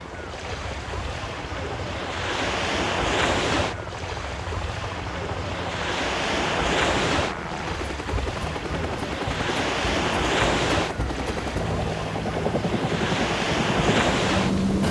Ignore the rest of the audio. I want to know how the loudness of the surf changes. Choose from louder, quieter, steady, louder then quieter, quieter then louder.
steady.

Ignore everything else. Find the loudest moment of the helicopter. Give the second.
14 s.